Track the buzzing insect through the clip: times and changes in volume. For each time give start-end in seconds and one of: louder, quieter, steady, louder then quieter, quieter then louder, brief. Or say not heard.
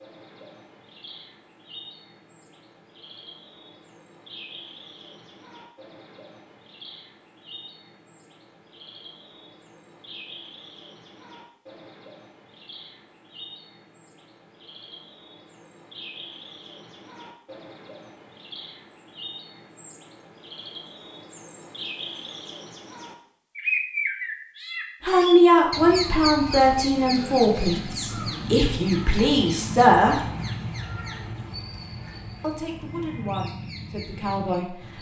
not heard.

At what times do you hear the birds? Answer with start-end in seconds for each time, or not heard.
0.0-34.9.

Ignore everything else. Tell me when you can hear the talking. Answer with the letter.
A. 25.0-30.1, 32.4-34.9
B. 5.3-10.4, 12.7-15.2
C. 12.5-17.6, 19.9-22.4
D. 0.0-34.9
A.